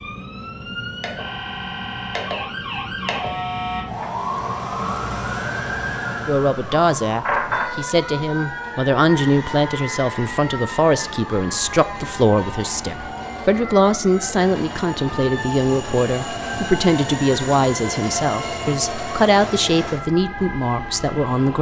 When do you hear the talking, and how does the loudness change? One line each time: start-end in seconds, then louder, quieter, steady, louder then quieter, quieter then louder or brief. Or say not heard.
6.2-21.5 steady.